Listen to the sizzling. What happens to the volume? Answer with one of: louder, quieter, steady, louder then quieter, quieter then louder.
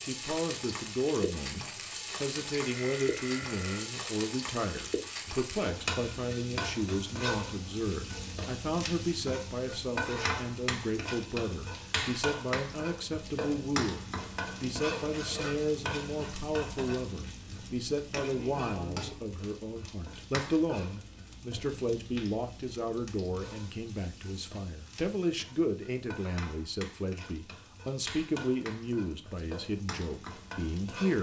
quieter.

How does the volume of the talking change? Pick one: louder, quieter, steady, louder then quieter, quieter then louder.
steady.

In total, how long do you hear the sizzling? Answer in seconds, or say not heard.
31 s.